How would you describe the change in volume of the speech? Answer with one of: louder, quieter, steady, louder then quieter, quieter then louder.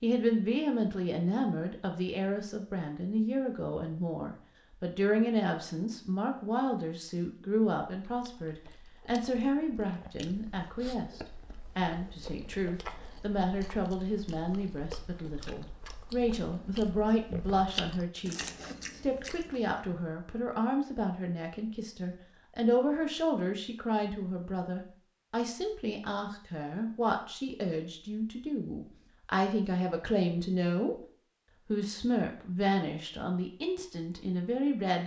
steady.